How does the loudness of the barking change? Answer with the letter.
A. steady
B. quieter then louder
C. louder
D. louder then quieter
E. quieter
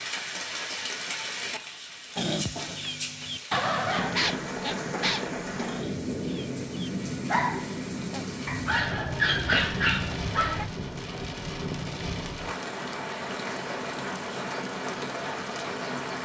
B.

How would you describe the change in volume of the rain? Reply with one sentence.
The loudness of the rain stays about the same.